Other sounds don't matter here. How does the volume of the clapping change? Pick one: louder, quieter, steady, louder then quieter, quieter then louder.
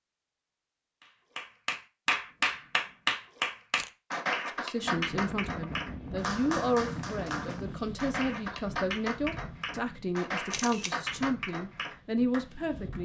quieter.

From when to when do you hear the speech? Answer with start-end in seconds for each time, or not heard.
4.5-13.0.